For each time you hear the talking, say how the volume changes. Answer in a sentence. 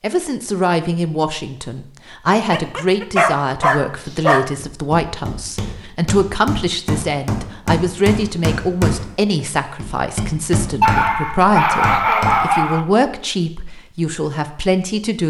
The talking can be heard from 0.0 to 15.2 s, at a steady volume.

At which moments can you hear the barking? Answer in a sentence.
You can hear the barking from 2.5 to 4.5 s and from 10.8 to 12.8 s.